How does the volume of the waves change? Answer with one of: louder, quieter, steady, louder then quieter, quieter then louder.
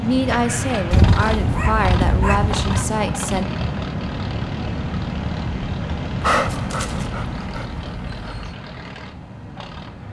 quieter.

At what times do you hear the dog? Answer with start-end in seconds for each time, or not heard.
0.9-2.6, 6.2-8.6.